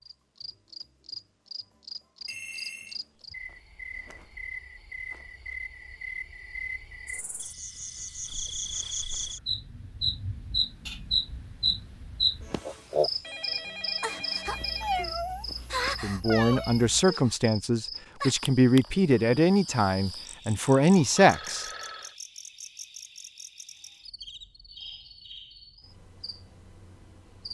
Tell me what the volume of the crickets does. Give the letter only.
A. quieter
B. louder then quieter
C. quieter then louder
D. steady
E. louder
B.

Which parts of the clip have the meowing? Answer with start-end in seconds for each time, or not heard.
14.4-17.1.